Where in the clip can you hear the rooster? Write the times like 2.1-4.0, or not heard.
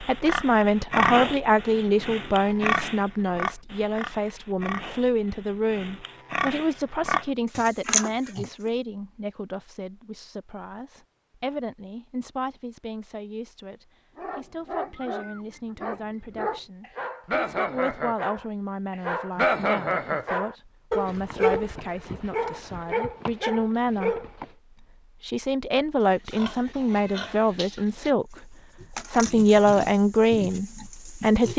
not heard.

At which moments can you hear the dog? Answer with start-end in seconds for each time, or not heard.
14.2-24.5.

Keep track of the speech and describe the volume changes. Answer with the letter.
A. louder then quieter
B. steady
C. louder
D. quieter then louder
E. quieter
D.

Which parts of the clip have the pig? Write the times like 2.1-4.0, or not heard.
0.0-8.5, 26.1-31.5.